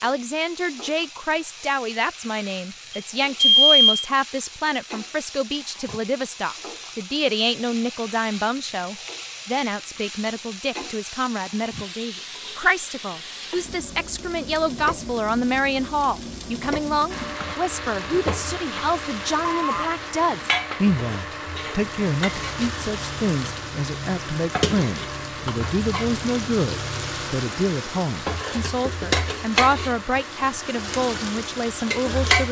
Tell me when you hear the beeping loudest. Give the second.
4 s.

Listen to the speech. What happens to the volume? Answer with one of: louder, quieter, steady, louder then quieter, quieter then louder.
steady.